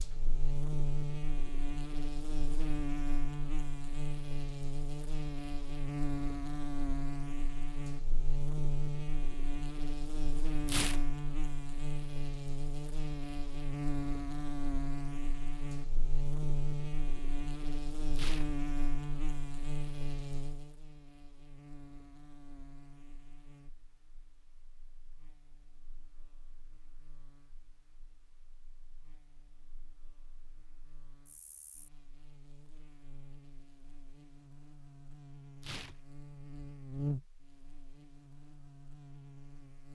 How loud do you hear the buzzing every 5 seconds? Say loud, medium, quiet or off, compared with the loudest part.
loud, loud, loud, loud, medium, quiet, quiet, medium.